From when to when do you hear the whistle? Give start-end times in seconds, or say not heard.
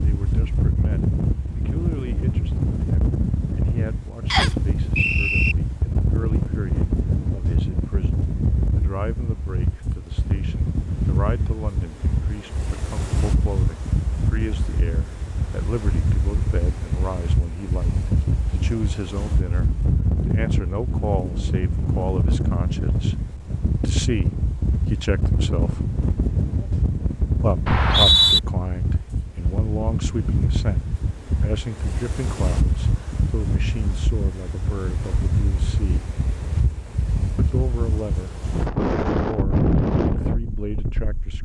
4.3-5.5, 27.6-28.4.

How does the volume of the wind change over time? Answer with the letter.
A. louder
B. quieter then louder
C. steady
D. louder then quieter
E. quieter
C.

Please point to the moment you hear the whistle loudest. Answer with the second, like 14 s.
28 s.